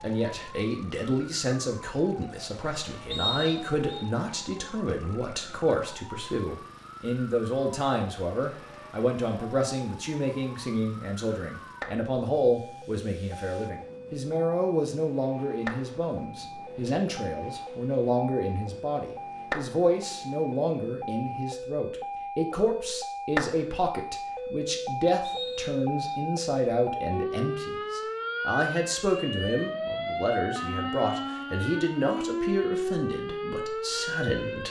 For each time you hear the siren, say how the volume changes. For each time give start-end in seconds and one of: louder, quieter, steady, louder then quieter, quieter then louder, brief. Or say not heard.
0.0-34.6 louder.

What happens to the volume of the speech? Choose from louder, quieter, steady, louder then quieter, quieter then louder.
steady.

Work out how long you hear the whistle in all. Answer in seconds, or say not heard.
2 s.